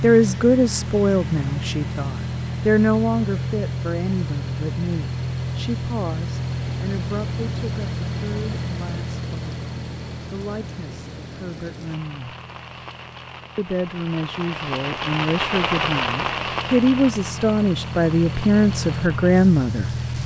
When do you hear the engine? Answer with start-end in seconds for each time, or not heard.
0.0-20.2.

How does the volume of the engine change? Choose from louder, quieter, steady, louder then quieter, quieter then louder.
quieter then louder.